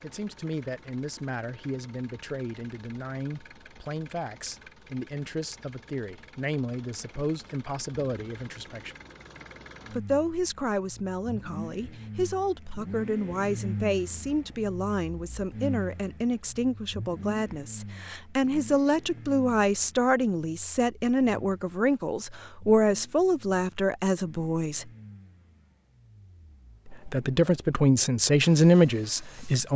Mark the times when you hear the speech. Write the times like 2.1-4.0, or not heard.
0.0-8.9, 9.9-24.9, 26.9-29.7.